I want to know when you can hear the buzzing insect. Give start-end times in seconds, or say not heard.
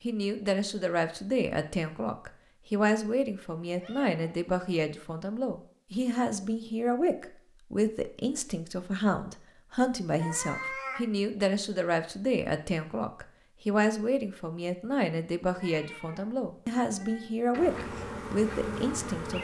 17.5-19.3.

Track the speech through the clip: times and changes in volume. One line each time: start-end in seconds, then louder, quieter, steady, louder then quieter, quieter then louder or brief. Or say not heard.
0.0-19.3 steady.